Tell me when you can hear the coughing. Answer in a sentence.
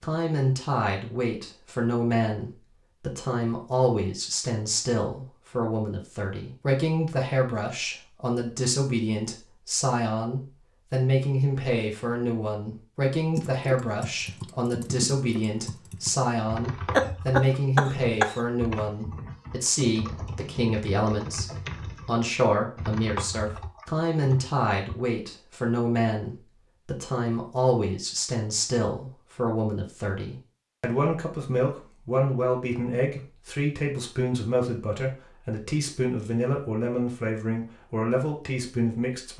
The coughing can be heard from 16.9 to 18.4 s.